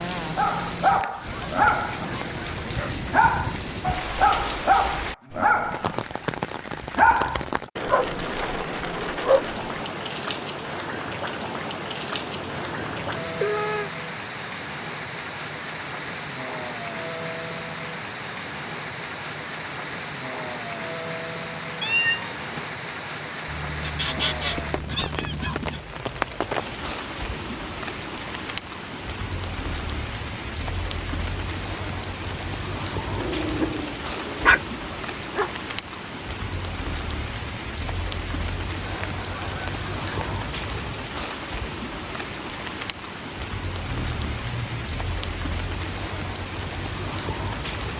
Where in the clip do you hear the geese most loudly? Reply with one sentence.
The volume of the geese peaks at 24 seconds.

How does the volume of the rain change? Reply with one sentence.
The loudness of the rain stays about the same.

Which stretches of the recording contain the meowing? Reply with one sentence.
You can hear the meowing from 12.2 to 13.9 s, from 21.8 to 22.7 s and from 43.9 to 45.0 s.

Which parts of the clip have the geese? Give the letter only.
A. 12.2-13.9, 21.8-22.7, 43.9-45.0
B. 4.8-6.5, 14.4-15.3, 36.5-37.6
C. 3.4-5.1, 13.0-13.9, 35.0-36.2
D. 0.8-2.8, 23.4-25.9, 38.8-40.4
D.